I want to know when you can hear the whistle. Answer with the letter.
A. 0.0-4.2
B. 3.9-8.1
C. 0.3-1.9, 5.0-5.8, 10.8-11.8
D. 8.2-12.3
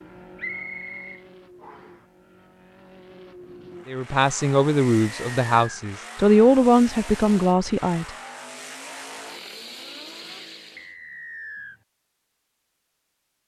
C.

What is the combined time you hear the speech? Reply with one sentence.
The speech can be heard for 4 seconds in total.